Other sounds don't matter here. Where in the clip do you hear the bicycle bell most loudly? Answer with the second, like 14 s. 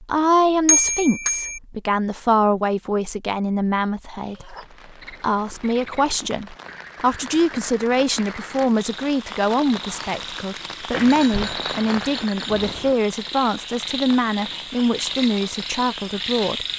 1 s.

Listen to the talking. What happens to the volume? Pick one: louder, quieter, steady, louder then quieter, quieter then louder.
steady.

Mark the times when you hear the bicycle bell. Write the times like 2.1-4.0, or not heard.
0.7-1.6, 10.9-12.9.